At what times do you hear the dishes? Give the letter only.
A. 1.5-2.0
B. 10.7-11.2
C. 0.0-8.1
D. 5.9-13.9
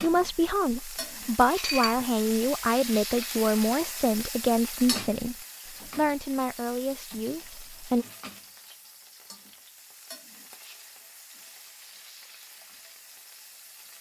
A.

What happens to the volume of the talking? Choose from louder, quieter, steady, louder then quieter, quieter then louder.
quieter.